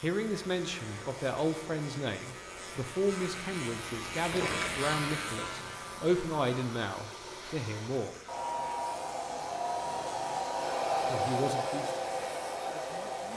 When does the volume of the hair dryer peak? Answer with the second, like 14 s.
11 s.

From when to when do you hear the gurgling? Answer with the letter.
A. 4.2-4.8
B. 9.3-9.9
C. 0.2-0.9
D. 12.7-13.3
A.